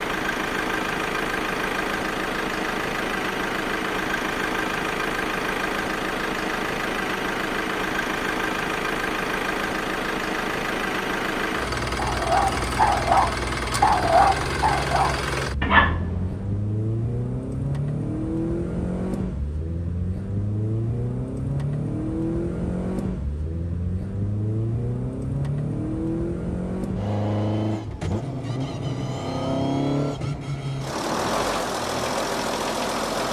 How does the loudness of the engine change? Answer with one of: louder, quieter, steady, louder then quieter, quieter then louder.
steady.